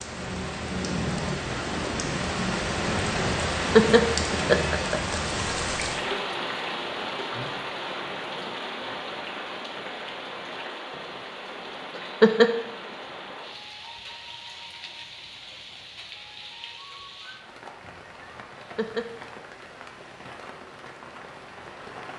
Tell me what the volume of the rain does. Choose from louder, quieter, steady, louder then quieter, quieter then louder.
quieter.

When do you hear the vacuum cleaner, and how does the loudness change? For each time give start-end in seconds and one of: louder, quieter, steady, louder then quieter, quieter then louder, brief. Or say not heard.
not heard.